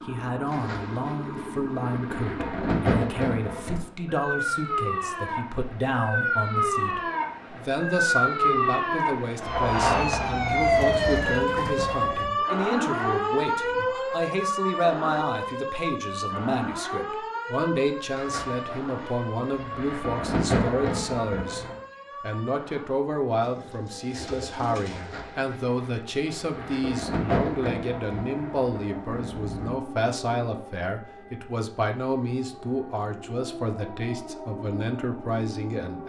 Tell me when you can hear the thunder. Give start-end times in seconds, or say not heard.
0.5-3.8, 18.1-21.8, 24.9-29.8.